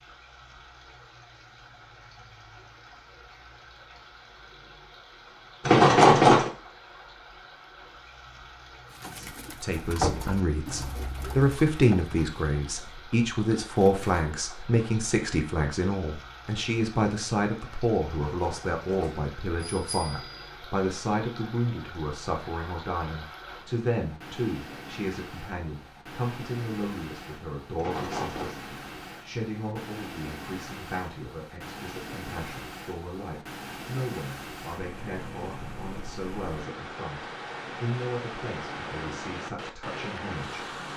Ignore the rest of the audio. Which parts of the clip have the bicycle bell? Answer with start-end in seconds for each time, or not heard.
5.7-6.5, 18.3-20.5, 27.8-28.6.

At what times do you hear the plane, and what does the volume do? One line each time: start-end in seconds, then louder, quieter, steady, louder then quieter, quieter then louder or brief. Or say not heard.
not heard.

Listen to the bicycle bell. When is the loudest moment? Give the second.
6 s.